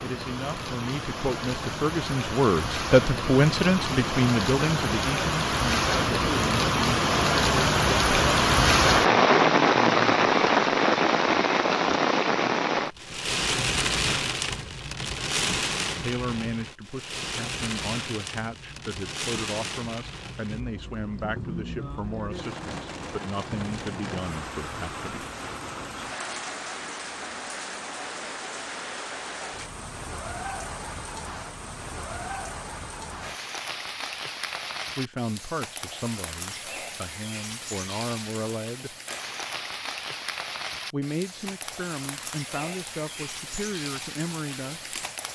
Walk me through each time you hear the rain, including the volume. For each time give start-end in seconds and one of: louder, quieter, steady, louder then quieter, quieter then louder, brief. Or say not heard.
0.0-45.3 quieter.